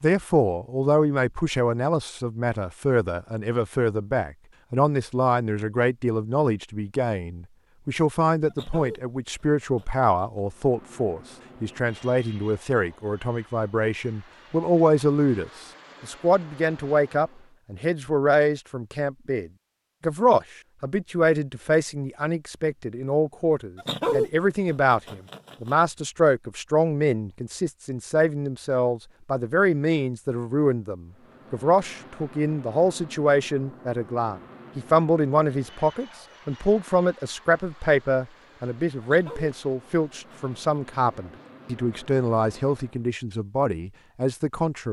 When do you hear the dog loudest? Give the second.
24 s.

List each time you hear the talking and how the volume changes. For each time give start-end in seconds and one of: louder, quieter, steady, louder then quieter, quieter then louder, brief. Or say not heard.
0.0-44.8 steady.